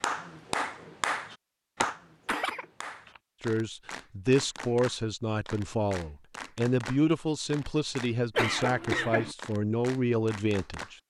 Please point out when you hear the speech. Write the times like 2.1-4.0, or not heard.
3.4-10.9.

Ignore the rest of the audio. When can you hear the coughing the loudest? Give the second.
9 s.